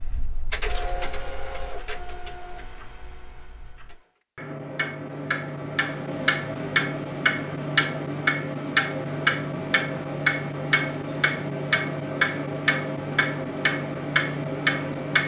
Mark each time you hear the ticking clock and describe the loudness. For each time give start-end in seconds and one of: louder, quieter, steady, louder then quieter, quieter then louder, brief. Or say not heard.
0.0-15.2 louder.